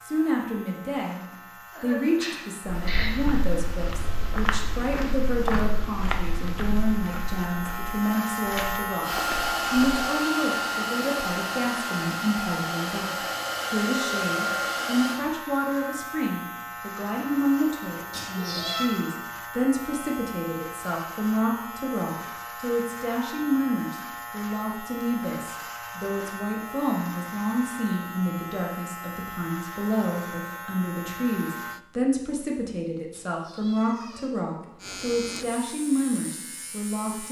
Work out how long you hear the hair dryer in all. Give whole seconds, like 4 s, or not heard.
6 s.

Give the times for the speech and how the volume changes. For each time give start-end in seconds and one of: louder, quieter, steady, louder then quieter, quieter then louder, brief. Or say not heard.
0.0-37.2 steady.